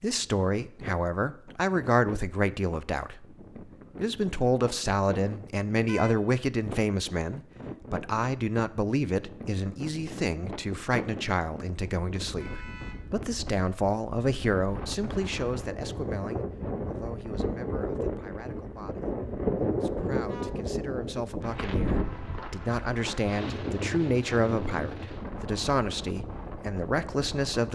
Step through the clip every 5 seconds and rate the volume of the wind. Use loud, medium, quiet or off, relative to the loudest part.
quiet, medium, medium, loud, loud, medium.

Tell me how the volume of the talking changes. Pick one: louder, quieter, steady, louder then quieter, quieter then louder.
quieter then louder.